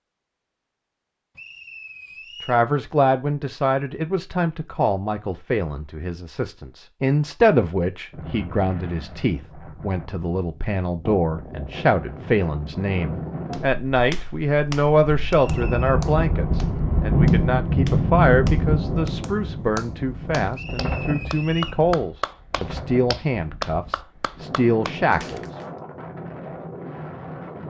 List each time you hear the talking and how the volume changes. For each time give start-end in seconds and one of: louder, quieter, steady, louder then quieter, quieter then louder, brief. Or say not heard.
2.4-25.4 steady.